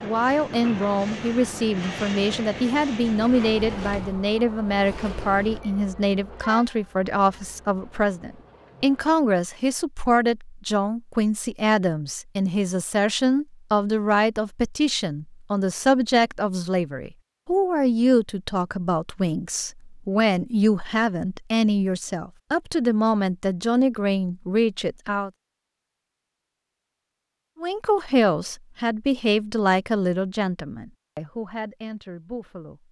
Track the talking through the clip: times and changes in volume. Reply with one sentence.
The talking can be heard from 0.0 to 25.3 s, at a steady volume; and from 27.6 to 32.8 s, getting quieter.